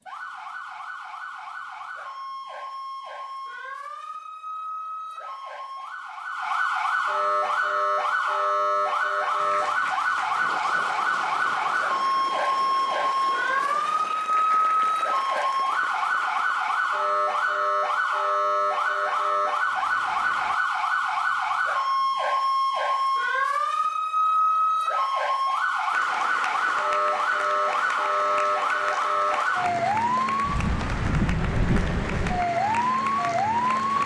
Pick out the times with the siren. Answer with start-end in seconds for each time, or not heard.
0.1-34.0.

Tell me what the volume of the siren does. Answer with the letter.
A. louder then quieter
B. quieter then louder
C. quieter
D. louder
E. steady
D.